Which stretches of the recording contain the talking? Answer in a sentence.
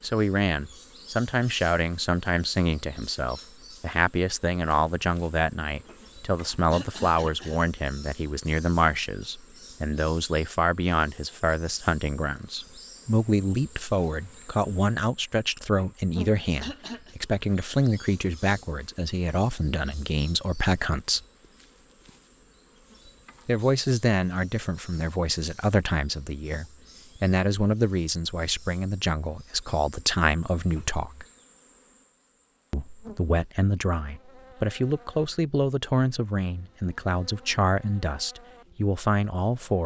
You can hear the talking from 0.0 to 21.2 s, from 23.4 to 31.2 s and from 32.7 to 39.8 s.